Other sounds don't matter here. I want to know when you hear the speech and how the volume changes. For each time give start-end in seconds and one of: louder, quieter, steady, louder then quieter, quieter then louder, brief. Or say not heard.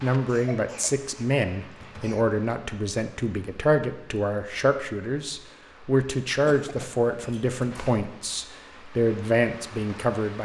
0.0-10.3 steady.